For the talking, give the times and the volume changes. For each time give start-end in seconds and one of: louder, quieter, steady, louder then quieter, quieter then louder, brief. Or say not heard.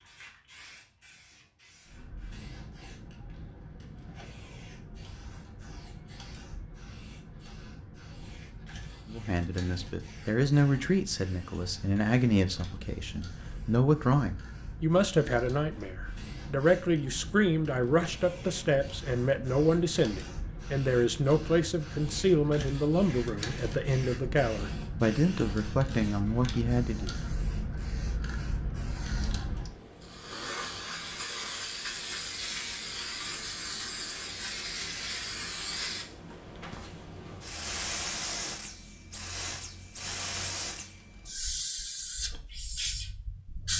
9.1-27.1 steady.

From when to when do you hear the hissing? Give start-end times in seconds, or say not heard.
0.0-43.7.